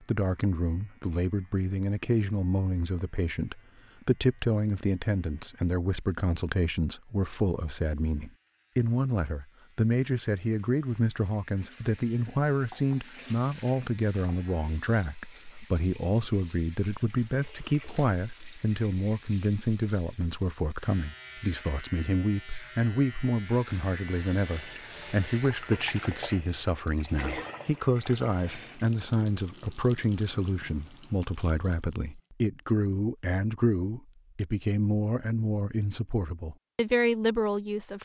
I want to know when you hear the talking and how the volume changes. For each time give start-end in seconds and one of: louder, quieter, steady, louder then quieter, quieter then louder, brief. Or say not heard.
0.1-38.0 steady.